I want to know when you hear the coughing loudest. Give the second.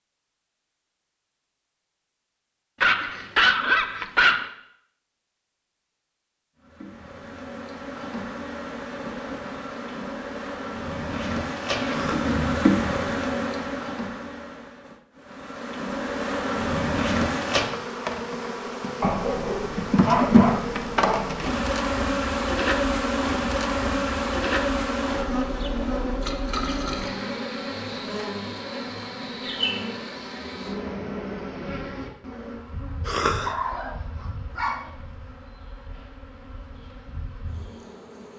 33 s.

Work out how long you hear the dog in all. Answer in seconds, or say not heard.
6 s.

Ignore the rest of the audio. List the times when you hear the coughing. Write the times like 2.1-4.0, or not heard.
11.8-12.3, 33.0-33.5.